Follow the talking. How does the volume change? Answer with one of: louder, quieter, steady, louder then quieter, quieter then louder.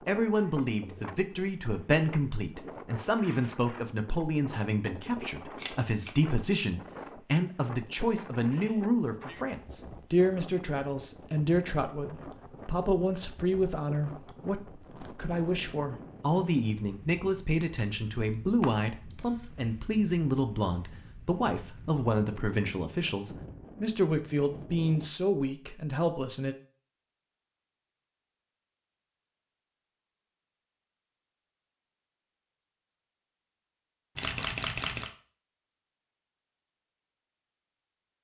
steady.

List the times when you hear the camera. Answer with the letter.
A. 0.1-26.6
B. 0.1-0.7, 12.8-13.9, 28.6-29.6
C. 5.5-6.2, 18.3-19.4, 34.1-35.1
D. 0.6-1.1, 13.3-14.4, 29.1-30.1
C.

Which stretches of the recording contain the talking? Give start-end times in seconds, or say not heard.
0.1-26.6.